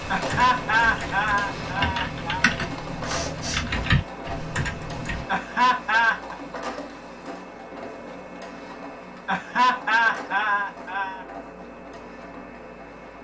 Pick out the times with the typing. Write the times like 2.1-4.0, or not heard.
0.0-5.2.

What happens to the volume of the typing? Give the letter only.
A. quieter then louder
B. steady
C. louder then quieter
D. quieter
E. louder
E.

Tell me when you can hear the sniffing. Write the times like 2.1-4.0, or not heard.
2.4-3.6.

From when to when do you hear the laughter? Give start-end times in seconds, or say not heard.
0.1-2.5, 5.2-6.3, 9.2-11.2.